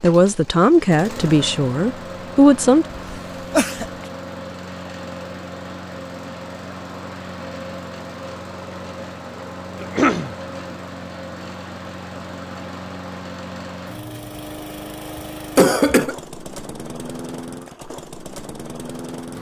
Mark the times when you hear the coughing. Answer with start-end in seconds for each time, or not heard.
2.9-3.9, 9.8-10.3, 15.6-16.1.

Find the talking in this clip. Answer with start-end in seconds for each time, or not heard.
0.0-2.9.